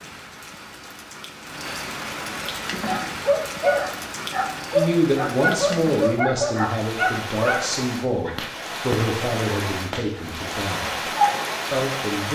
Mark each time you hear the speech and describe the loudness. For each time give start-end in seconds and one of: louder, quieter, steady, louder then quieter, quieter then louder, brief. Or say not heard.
4.7-10.9 quieter
11.7-12.3 brief.